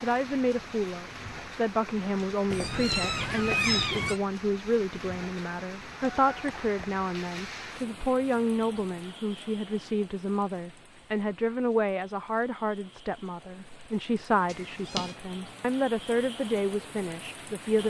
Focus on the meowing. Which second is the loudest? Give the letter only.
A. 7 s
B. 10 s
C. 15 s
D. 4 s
D.